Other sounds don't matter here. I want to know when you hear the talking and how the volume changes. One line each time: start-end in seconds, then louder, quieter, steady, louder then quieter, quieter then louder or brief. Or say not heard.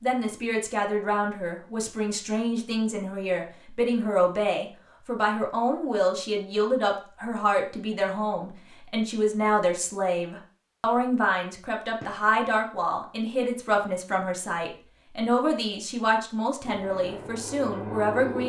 0.0-18.4 steady.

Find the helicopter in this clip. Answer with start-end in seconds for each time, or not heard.
16.6-18.4.